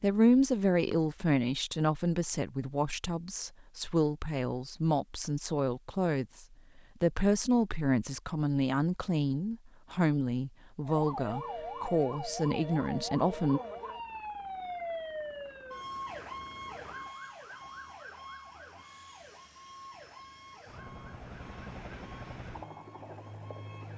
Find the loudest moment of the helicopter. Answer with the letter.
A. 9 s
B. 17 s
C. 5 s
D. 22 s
D.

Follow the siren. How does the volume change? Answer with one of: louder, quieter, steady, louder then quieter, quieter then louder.
quieter.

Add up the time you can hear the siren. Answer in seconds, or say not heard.
13 s.